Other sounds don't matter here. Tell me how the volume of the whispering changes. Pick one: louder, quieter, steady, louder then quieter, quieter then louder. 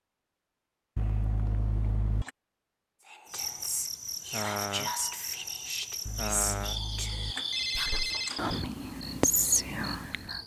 louder.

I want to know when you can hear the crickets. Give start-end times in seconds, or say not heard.
3.2-10.4.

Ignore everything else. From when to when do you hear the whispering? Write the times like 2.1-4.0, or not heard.
3.0-10.4.